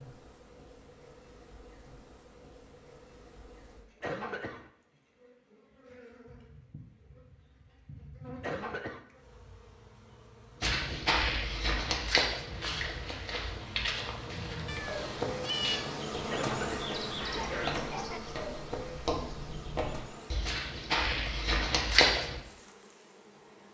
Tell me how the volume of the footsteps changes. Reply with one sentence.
The loudness of the footsteps goes down, then up.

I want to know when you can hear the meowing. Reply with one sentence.
The meowing can be heard from 14.7 to 16.0 s.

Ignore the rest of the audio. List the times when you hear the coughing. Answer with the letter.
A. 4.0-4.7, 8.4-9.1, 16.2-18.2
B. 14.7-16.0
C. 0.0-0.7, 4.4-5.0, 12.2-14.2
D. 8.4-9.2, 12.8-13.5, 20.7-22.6
A.